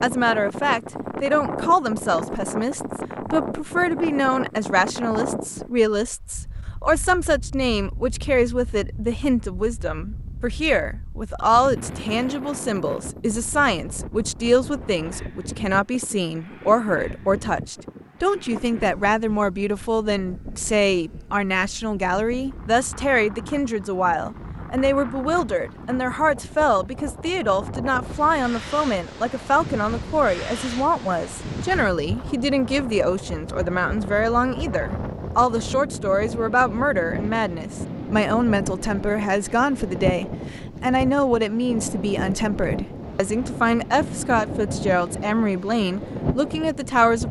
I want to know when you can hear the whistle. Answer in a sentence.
The whistle can't be heard in this clip.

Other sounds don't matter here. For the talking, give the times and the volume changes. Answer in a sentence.
You can hear the talking from 0.0 to 47.2 s, at a steady volume.